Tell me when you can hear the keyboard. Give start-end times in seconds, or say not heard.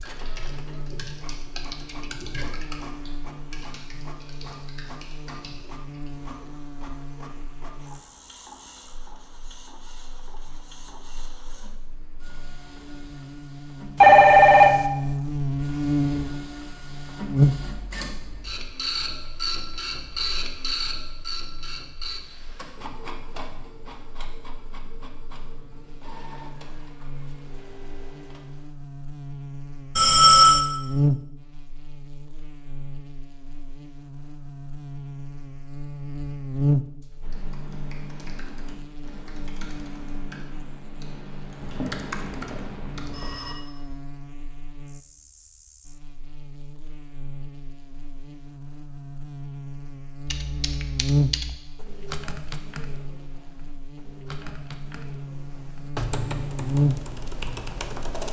0.0-6.1, 37.2-43.1, 50.2-58.2.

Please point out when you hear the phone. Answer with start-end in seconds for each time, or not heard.
14.0-14.8, 29.9-30.6, 41.5-43.5.